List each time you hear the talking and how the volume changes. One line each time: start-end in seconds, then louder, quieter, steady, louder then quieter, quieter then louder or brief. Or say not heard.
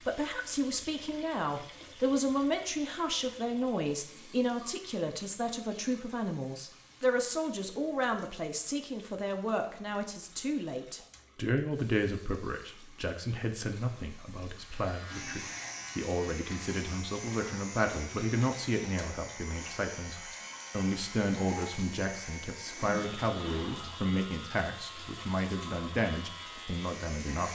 0.0-27.5 steady.